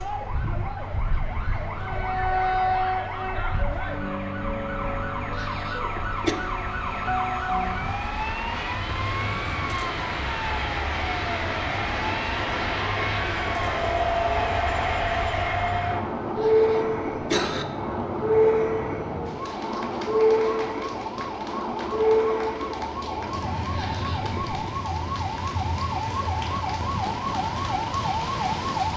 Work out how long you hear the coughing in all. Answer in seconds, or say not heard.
3 s.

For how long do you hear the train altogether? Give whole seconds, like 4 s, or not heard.
29 s.